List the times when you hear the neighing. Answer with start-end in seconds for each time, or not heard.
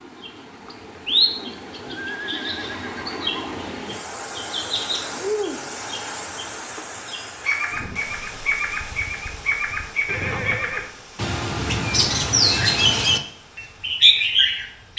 2.0-3.7, 10.1-10.9.